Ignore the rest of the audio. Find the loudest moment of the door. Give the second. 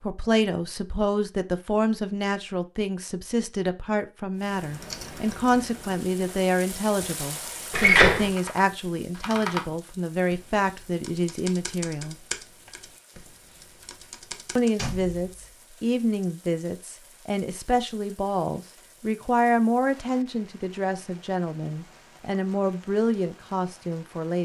8 s.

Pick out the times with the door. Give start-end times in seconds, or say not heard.
7.7-8.3, 14.8-15.6.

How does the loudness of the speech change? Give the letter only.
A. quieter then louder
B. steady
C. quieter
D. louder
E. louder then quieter
B.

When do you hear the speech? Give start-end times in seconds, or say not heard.
0.0-12.2, 14.6-24.3.